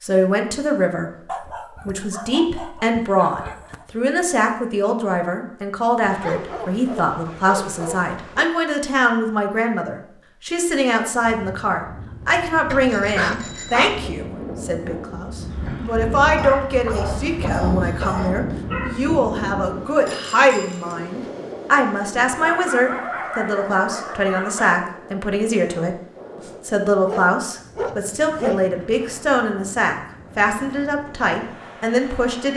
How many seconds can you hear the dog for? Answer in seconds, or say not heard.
13 s.